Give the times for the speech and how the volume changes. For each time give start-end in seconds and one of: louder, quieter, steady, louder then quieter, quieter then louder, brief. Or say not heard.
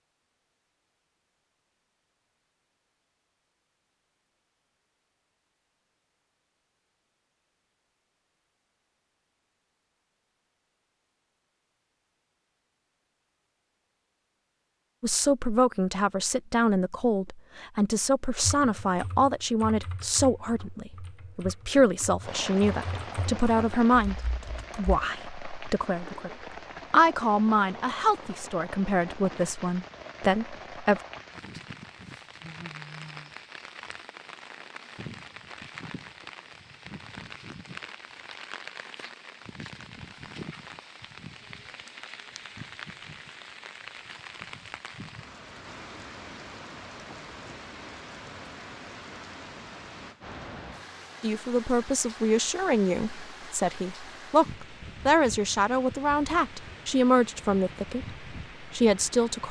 15.0-31.0 steady
51.2-59.4 steady.